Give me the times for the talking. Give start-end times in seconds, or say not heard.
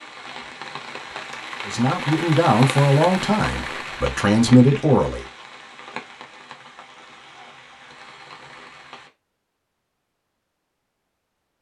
1.6-5.2.